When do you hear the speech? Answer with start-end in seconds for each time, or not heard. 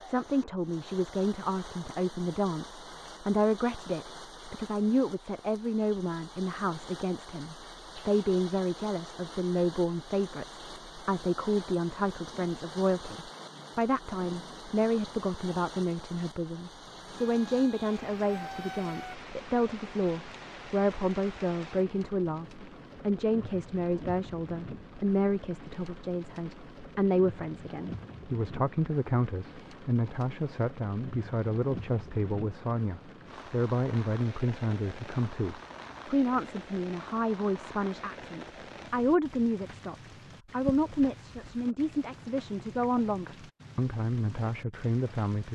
0.1-45.5.